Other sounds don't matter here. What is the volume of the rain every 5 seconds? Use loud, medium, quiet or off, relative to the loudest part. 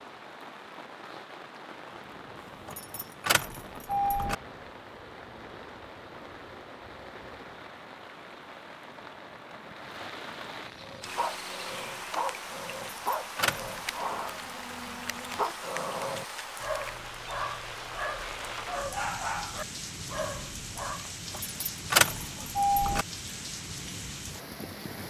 medium, medium, loud, loud, loud.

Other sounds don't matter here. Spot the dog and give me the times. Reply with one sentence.
The dog can be heard from 10.8 to 21.1 s.